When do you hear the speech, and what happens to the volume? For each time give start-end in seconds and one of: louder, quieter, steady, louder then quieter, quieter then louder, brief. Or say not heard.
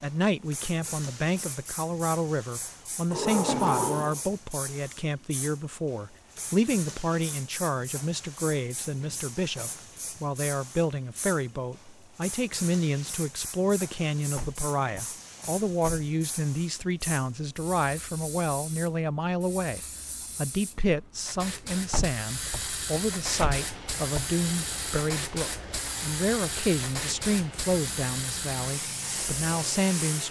0.0-30.2 steady.